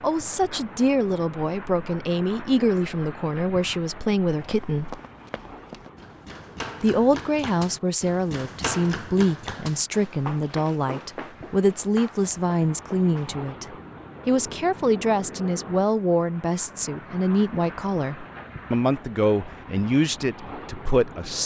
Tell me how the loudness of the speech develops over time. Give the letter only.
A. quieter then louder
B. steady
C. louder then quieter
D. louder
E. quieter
B.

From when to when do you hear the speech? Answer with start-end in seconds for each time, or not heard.
0.0-5.0, 6.8-21.4.